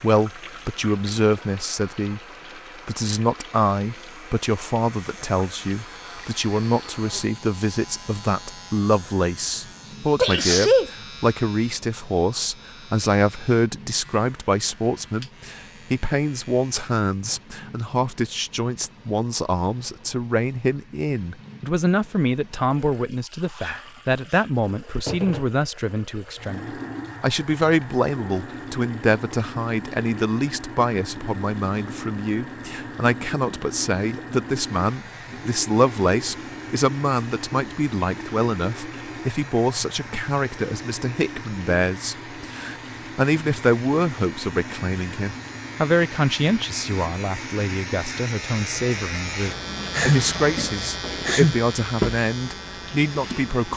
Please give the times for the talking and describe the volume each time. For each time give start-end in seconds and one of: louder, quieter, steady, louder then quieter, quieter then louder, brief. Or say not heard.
0.0-2.2 brief
2.9-53.7 steady.